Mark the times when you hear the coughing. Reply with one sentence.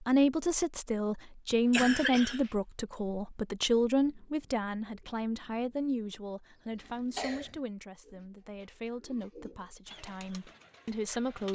You can hear the coughing from 1.5 to 2.5 s and from 6.8 to 7.5 s.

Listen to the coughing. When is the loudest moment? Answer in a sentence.
The volume of the coughing peaks at 2 seconds.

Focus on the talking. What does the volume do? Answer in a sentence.
The loudness of the talking goes down.